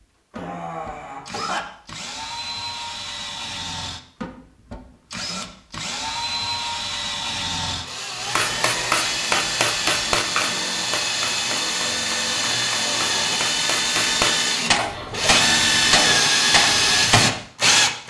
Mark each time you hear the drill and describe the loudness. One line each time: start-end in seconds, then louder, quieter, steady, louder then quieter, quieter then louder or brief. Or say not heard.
0.0-18.0 louder.